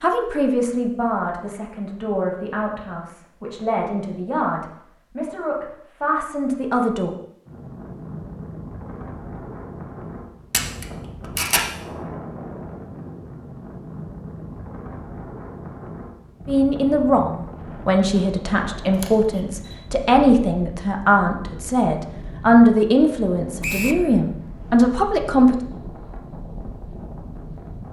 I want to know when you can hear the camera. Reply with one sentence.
You can hear the camera from 10.5 to 11.7 s and from 18.9 to 19.8 s.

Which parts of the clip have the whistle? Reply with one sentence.
You can hear the whistle from 23.6 to 24.1 s.